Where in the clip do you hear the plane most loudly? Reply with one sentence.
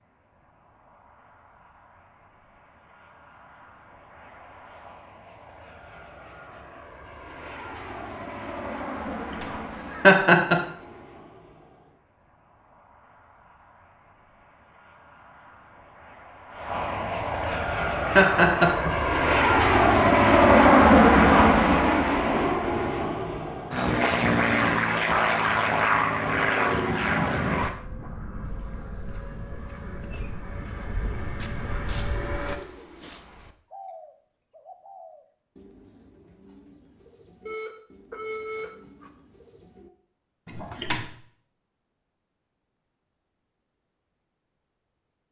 The loudest moment of the plane is at 21 seconds.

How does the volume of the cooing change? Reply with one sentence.
The volume of the cooing goes up, then down.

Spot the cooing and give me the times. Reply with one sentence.
The cooing can be heard from 28.4 to 39.9 s.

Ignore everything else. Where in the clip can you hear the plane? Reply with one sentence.
You can hear the plane from 0.3 to 32.5 s.